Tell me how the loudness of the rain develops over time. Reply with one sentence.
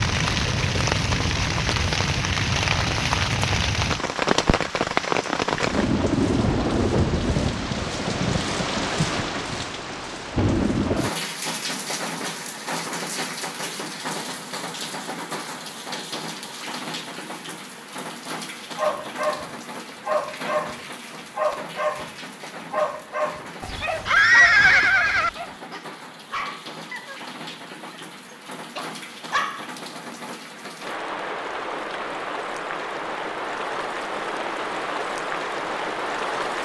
The volume of the rain goes down, then up.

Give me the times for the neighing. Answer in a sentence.
You can hear the neighing from 23.6 to 25.3 s.